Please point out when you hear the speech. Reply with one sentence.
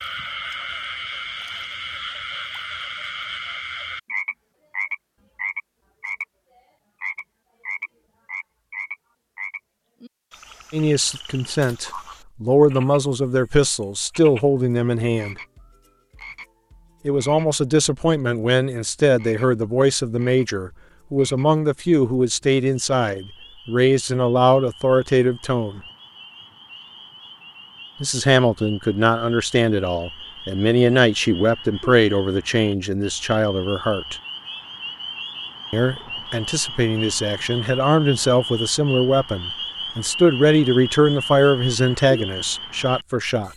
You can hear the speech from 10.7 to 15.3 s, from 17.1 to 25.8 s, from 28.0 to 34.1 s and from 35.7 to 43.5 s.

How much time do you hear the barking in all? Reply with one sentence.
The barking can't be heard in this clip.